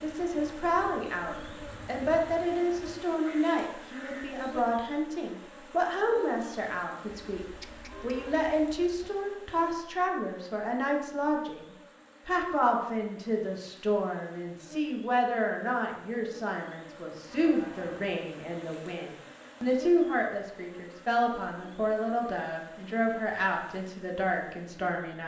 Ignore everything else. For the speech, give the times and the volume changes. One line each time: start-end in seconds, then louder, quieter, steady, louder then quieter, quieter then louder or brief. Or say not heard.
0.0-11.7 steady
12.2-25.2 steady.